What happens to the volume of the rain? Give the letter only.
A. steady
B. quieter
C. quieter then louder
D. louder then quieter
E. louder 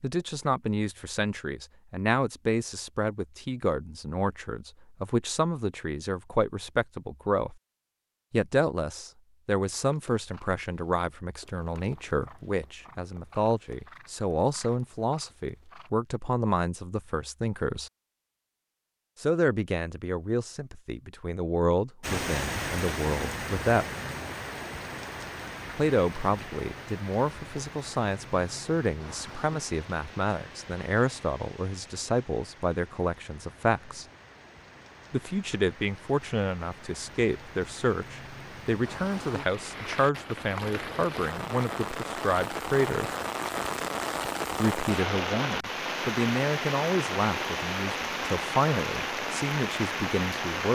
C.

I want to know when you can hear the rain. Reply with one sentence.
The rain can be heard from 22.0 to 50.6 s.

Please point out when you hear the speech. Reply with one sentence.
You can hear the speech from 0.0 to 7.5 s, from 8.3 to 17.9 s, from 19.2 to 23.9 s, from 25.8 to 34.0 s, from 35.1 to 43.1 s and from 44.5 to 50.6 s.